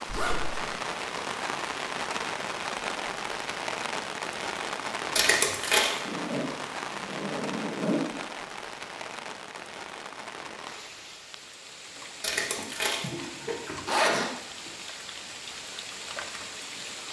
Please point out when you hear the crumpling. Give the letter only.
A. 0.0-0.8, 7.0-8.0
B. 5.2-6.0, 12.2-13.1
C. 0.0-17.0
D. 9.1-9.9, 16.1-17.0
B.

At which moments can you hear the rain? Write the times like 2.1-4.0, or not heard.
0.0-17.0.